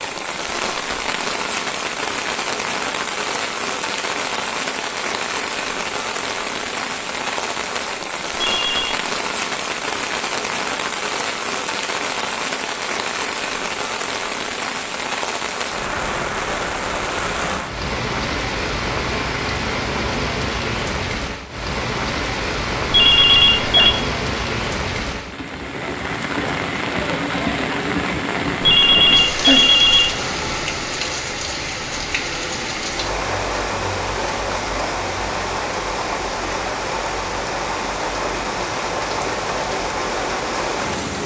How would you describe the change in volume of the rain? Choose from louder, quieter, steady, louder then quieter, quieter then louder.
steady.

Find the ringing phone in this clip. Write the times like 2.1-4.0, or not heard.
8.4-9.0, 22.9-23.9, 28.6-30.1.